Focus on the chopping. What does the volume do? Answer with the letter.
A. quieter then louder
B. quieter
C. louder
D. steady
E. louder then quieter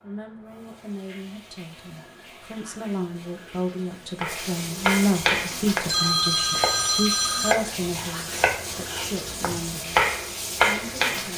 A.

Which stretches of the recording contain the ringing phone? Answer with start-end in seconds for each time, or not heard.
5.8-7.5.